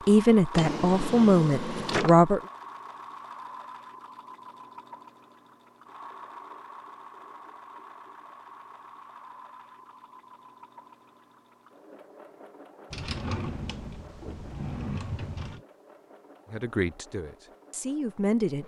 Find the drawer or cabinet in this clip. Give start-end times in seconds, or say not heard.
0.5-2.2, 12.9-15.6.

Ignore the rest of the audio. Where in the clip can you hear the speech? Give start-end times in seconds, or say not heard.
0.1-2.4, 16.5-18.6.